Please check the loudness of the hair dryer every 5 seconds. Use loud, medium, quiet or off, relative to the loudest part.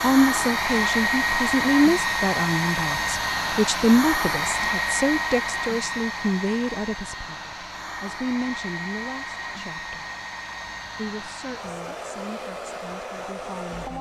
loud, medium, medium.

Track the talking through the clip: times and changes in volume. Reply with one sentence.
The talking can be heard from 0.0 to 10.1 s, getting quieter; and briefly from 10.9 to 13.9 s.